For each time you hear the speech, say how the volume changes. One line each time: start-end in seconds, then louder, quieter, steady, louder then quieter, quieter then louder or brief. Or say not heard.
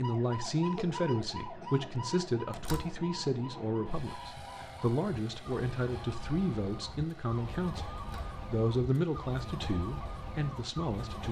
0.0-11.2 steady.